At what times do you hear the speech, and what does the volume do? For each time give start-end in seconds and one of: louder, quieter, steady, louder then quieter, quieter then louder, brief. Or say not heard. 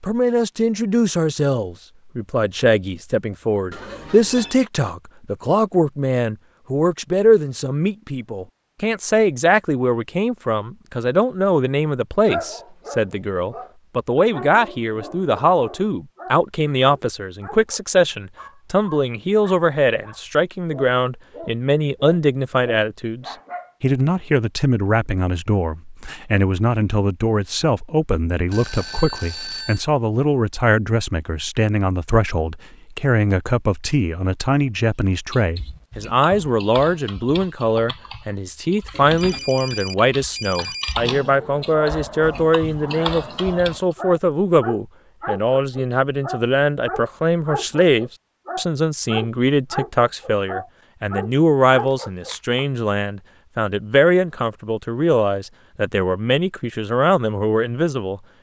0.0-58.2 steady.